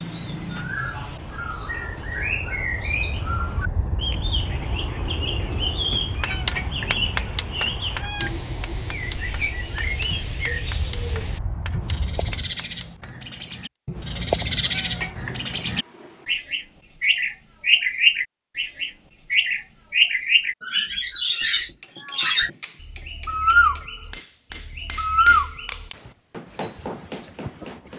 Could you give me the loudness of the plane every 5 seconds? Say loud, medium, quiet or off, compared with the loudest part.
loud, loud, loud, off, off, off.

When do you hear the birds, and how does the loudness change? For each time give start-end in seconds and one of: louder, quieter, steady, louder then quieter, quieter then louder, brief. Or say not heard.
0.0-27.9 louder.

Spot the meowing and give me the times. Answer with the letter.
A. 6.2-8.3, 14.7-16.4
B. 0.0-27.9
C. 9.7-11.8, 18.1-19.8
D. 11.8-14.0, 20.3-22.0
A.